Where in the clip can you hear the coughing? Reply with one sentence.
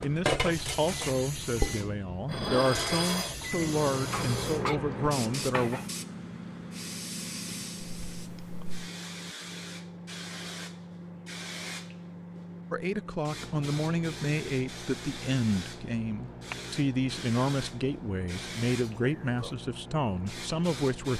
The coughing can be heard from 4.1 to 4.8 s, from 7.8 to 8.8 s and from 18.8 to 19.6 s.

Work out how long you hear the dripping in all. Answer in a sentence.
You can't hear the dripping here.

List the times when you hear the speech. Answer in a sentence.
You can hear the speech from 0.0 to 5.8 s and from 12.7 to 21.1 s.